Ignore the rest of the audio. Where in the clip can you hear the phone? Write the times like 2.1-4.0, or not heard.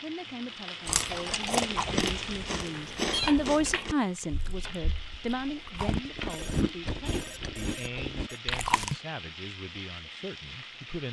2.7-3.4, 6.2-8.4.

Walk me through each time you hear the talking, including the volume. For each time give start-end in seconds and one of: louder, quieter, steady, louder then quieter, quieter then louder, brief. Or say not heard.
0.0-11.0 louder then quieter.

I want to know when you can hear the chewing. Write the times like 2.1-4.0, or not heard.
0.8-8.9.